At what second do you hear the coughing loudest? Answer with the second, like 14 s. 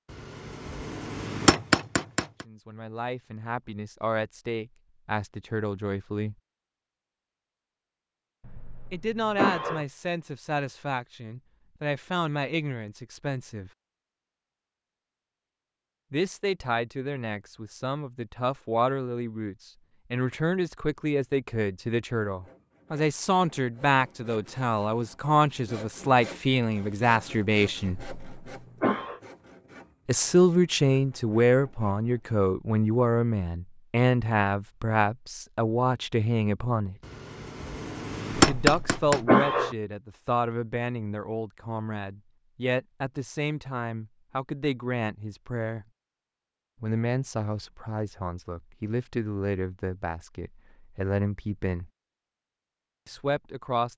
39 s.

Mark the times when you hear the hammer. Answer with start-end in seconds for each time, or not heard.
0.1-2.5, 37.0-39.2.